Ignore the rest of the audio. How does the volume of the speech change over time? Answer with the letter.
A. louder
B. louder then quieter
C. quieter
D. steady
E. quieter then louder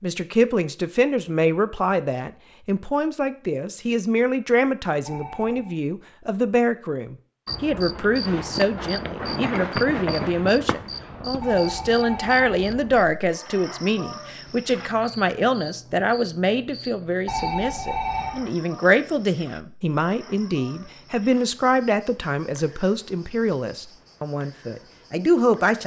D.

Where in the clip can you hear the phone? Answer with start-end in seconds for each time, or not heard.
5.0-5.8, 11.4-13.0, 17.2-18.5.